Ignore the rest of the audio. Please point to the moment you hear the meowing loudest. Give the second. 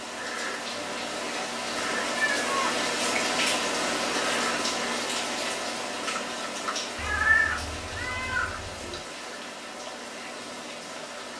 7 s.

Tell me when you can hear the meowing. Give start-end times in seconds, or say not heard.
2.1-2.8, 7.0-9.0.